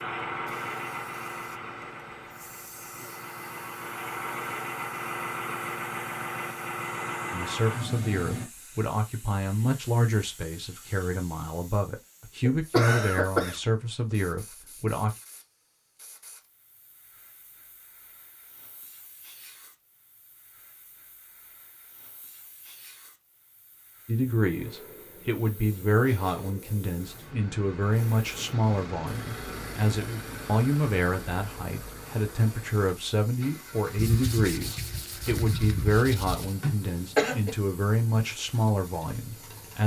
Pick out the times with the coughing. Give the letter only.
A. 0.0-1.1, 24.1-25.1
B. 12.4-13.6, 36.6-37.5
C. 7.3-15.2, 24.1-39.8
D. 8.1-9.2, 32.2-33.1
B.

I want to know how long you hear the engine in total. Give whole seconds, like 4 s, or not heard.
24 s.